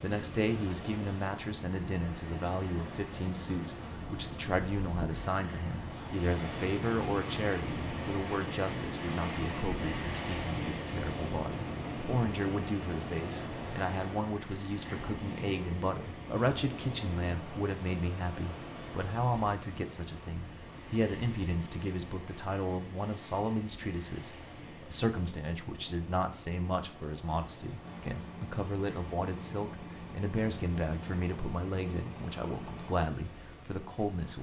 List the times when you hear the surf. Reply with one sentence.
The surf can be heard from 0.0 to 34.3 s.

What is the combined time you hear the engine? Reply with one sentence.
You can hear the engine for 5 seconds altogether.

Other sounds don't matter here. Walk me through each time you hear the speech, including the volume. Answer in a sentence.
You can hear the speech from 0.0 to 34.3 s, at a steady volume.